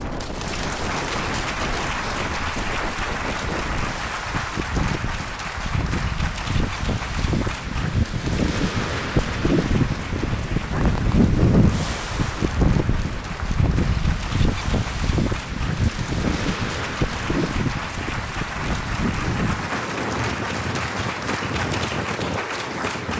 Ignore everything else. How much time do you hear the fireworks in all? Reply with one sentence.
The fireworks can't be heard in this clip.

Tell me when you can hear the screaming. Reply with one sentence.
The screaming can't be heard in this clip.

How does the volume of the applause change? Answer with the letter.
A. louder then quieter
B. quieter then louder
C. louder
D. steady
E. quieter
B.